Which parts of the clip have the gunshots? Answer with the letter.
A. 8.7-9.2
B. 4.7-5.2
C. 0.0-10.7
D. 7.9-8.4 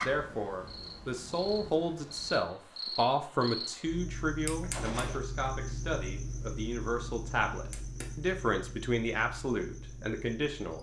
B.